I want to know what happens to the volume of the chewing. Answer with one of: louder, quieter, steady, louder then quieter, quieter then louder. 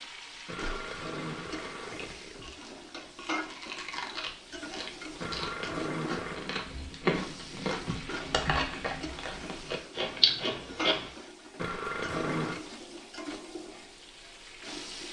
louder.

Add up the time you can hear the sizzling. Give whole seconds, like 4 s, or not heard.
15 s.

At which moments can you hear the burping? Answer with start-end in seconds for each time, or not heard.
0.5-2.5, 5.2-6.5, 11.6-12.7.